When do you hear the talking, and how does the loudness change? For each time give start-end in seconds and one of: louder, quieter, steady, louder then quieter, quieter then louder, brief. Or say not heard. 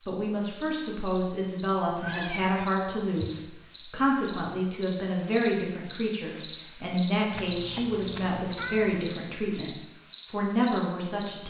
0.1-11.4 steady.